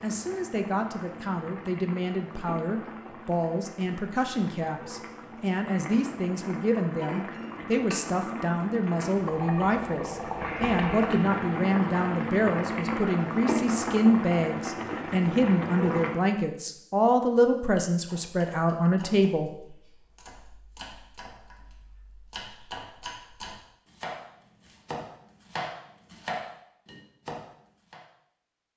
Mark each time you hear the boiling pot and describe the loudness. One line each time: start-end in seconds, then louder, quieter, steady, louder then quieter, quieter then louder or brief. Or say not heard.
0.0-16.2 louder.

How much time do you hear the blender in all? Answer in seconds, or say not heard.
not heard.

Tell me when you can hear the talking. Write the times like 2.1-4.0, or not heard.
0.0-19.5.